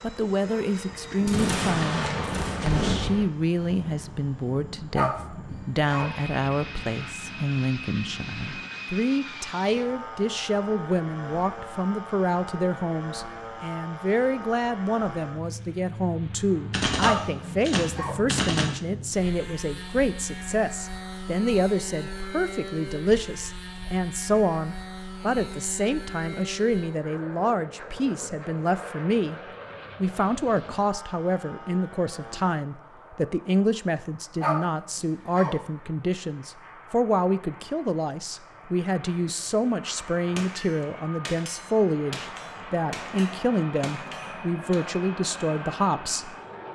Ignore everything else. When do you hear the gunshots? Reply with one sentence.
You can hear the gunshots from 1.2 to 3.2 s, from 16.7 to 18.7 s and from 40.4 to 44.8 s.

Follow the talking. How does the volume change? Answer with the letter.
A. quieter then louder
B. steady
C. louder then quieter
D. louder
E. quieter
B.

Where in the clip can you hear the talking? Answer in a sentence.
The talking can be heard from 0.0 to 29.4 s and from 30.0 to 46.4 s.